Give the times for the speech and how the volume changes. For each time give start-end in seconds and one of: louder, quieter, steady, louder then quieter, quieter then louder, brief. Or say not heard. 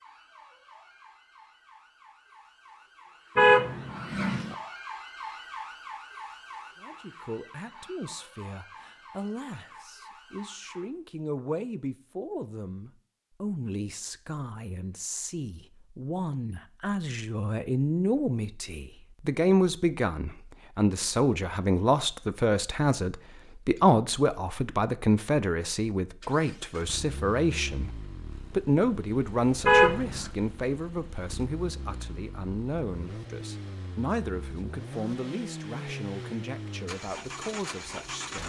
6.8-38.4 louder then quieter.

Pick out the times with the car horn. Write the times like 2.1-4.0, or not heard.
3.4-4.5, 29.6-30.2.